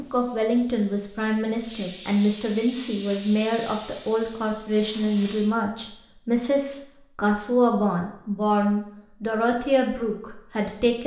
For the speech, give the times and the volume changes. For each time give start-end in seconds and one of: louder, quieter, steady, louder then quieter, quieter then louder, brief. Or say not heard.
0.0-11.0 steady.